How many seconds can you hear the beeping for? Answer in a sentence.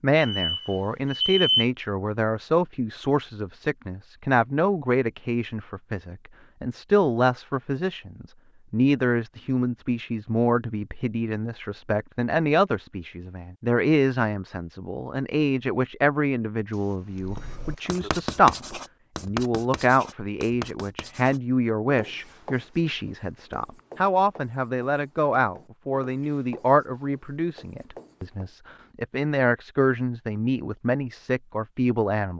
The beeping can be heard for 3 seconds in total.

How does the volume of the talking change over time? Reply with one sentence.
The loudness of the talking stays about the same.